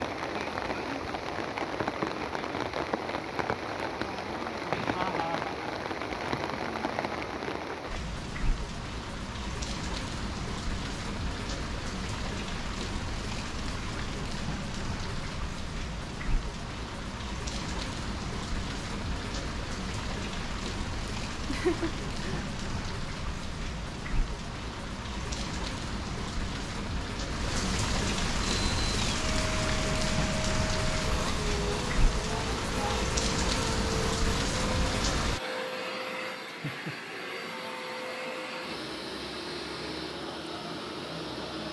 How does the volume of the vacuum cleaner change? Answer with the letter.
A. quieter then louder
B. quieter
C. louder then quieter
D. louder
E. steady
E.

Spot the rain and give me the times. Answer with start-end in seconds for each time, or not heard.
0.0-35.4.